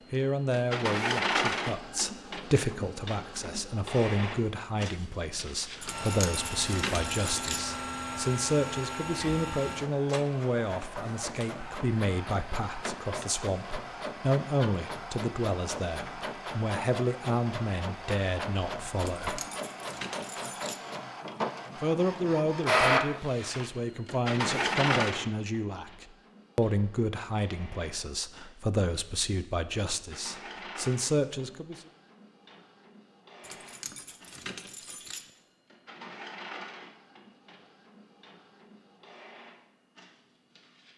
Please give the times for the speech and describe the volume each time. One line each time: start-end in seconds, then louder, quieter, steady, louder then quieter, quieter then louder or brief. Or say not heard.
0.1-19.4 steady
21.8-31.8 steady.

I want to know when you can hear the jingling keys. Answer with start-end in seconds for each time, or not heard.
5.8-7.7, 18.9-20.9, 33.4-35.3.